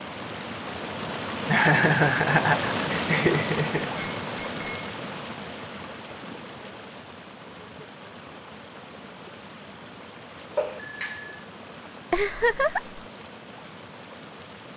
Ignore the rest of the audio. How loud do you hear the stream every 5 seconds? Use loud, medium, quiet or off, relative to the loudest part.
loud, medium, quiet.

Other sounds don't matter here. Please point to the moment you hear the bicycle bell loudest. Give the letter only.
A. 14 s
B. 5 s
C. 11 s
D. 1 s
C.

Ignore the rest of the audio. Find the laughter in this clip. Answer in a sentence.
The laughter can be heard from 1.4 to 3.9 s and from 12.1 to 13.0 s.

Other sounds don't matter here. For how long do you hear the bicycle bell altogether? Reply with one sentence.
You can hear the bicycle bell for 2 seconds altogether.